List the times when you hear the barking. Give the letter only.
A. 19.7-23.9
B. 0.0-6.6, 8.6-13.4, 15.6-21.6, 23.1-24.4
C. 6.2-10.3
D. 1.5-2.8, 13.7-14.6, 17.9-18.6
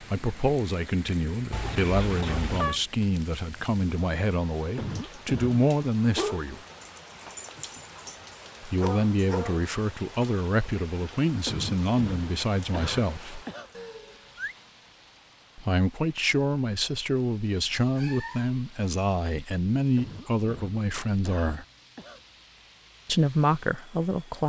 C.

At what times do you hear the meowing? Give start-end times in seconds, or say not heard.
1.5-2.8, 13.7-14.6, 17.9-18.6.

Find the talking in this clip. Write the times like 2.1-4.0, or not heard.
0.0-6.6, 8.6-13.4, 15.6-21.6, 23.1-24.4.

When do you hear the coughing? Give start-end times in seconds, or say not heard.
4.8-5.7, 11.4-13.7, 19.9-22.2.